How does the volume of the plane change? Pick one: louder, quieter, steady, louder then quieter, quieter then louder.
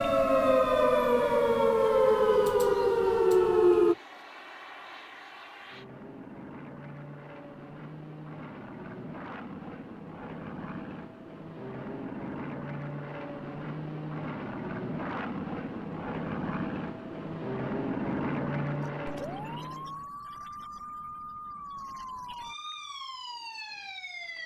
louder.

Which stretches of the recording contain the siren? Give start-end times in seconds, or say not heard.
0.0-4.0, 18.8-24.4.